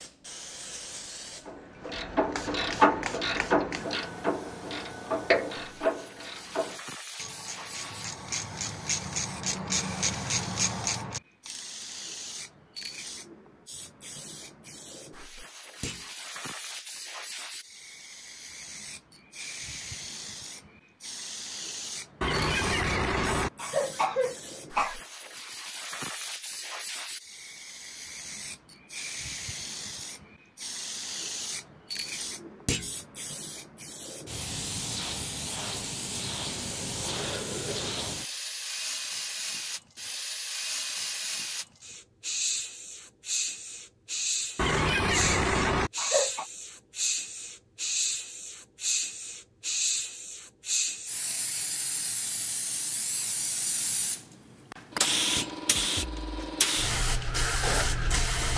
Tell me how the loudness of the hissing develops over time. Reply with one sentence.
The volume of the hissing goes up.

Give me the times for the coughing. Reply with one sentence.
The coughing can be heard from 22.2 to 24.9 s and from 44.5 to 46.5 s.